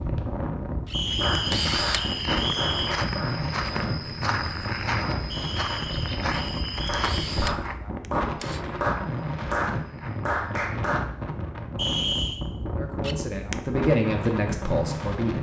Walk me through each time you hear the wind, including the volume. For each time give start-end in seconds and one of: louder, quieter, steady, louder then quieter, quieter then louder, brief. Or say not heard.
0.0-15.3 steady.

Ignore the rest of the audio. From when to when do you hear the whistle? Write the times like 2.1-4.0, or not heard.
0.9-3.0, 5.3-7.3, 11.8-12.4.